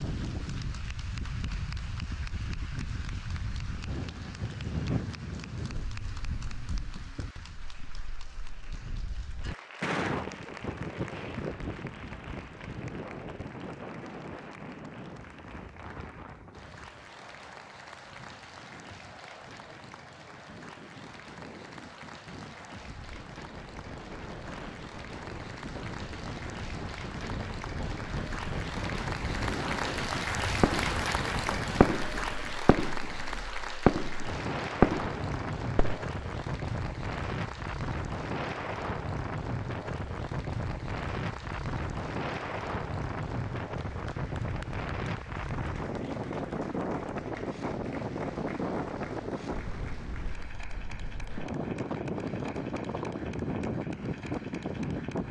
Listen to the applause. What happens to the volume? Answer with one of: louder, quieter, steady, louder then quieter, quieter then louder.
louder then quieter.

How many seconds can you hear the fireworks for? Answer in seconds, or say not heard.
4 s.